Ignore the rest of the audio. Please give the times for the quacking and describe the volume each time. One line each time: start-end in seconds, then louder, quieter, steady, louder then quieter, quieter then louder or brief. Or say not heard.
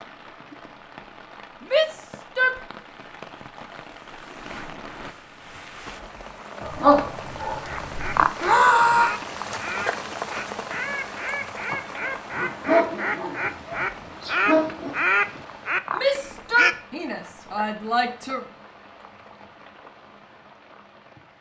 7.6-16.8 louder.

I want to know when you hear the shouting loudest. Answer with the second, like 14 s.
9 s.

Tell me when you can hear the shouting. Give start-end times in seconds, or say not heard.
1.7-2.6, 8.4-9.2, 15.9-18.4.